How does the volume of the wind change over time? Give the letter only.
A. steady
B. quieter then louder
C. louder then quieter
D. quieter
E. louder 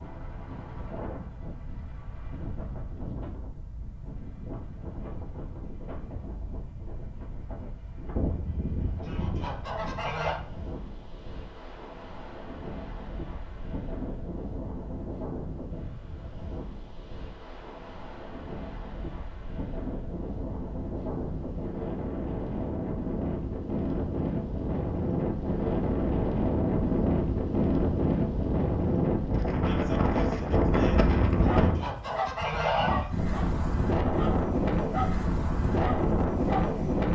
E.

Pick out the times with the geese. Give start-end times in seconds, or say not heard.
8.2-10.4, 30.5-33.0.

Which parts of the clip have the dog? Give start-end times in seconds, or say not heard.
31.4-36.8.